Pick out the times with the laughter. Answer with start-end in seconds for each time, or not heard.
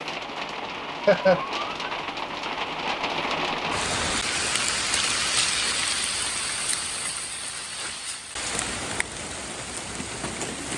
1.0-1.8.